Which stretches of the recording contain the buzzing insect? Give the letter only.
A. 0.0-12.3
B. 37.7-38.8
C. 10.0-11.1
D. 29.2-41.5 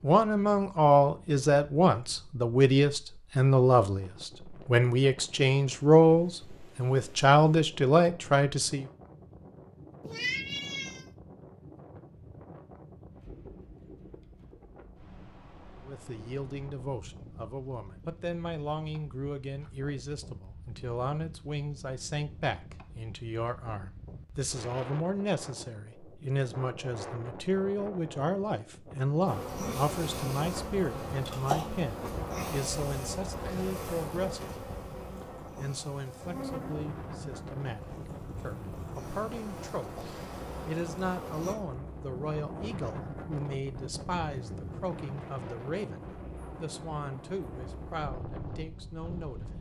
D.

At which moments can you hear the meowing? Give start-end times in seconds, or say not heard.
10.0-11.1.